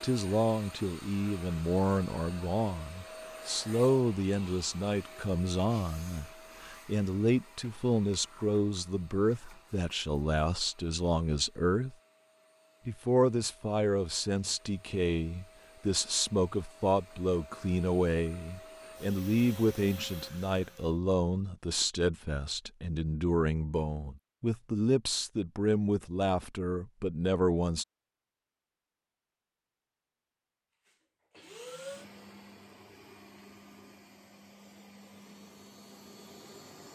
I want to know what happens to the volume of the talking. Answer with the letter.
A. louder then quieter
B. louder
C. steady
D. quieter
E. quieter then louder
C.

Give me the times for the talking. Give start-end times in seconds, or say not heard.
0.0-11.9, 12.8-27.9.